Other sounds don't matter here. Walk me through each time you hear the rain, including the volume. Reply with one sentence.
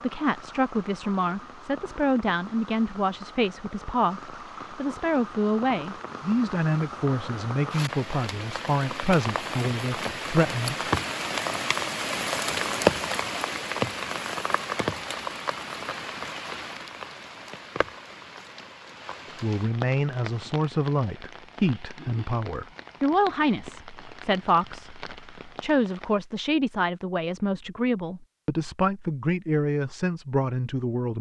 You can hear the rain from 0.0 to 26.2 s, getting louder then quieter.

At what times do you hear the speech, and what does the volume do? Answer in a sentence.
You can hear the speech from 0.0 to 10.9 s, at a steady volume; and from 19.4 to 31.1 s, at a steady volume.